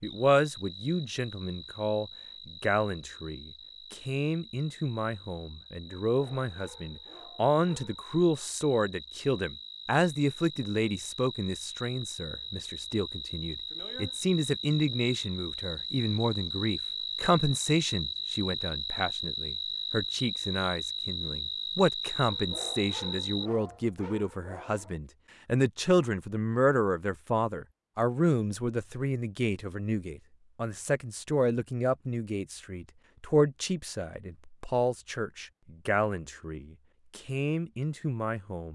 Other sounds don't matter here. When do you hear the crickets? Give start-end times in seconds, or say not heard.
0.0-23.5.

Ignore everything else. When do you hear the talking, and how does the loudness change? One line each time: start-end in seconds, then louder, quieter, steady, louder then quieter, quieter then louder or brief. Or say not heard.
0.0-38.6 steady.